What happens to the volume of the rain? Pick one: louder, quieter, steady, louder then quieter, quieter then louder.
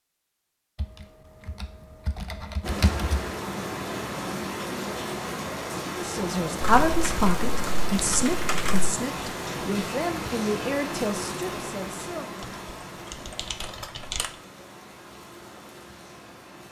quieter.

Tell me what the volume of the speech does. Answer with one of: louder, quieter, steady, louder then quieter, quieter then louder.
quieter.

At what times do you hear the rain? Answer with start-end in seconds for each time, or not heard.
2.6-16.6.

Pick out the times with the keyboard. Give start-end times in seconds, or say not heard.
0.8-3.2, 6.6-8.9, 12.4-14.3.